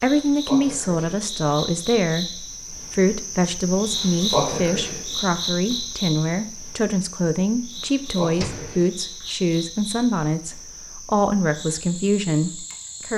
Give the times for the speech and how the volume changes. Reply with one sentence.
You can hear the speech from 0.0 to 13.1 s, at a steady volume.